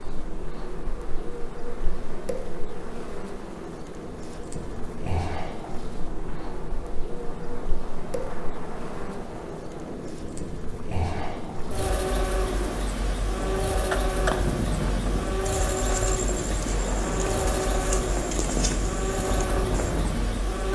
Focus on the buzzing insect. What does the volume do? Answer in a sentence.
The loudness of the buzzing insect goes up.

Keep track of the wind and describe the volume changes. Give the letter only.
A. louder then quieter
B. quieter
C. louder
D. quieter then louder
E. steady
C.